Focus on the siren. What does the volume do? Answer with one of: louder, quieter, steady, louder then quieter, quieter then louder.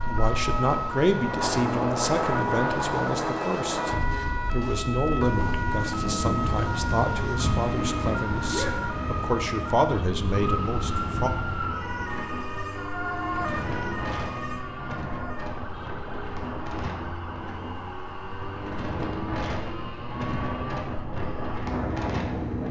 quieter.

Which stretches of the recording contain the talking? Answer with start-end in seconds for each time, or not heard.
0.0-11.3.